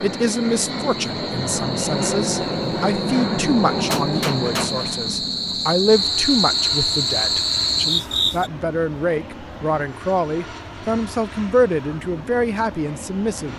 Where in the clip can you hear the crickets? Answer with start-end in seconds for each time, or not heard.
0.0-8.5.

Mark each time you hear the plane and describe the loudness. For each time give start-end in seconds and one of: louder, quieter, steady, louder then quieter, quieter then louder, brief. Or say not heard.
0.0-13.5 quieter.